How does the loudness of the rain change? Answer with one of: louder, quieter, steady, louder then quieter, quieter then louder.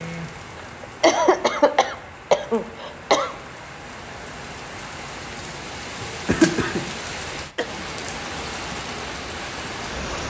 louder.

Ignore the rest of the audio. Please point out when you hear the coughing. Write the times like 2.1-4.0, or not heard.
0.8-3.4, 6.0-7.7.